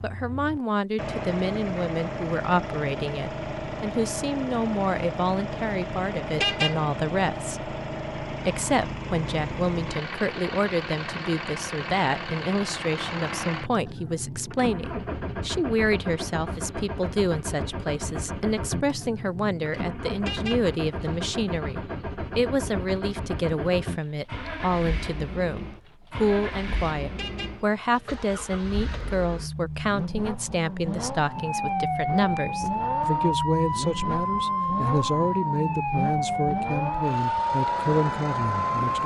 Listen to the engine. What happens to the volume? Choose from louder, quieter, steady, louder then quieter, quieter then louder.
steady.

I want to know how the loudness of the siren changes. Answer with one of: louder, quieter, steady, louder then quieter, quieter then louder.
steady.